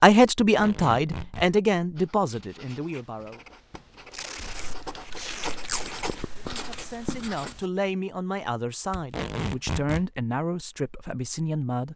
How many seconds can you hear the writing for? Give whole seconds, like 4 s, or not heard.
6 s.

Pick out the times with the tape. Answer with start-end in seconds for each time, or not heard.
0.4-1.5, 4.1-5.8, 8.9-10.1.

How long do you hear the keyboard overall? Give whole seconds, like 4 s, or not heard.
3 s.